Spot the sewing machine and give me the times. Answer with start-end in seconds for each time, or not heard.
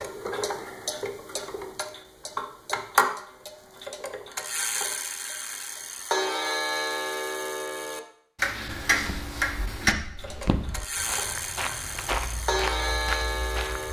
not heard.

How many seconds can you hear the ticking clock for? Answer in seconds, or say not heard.
14 s.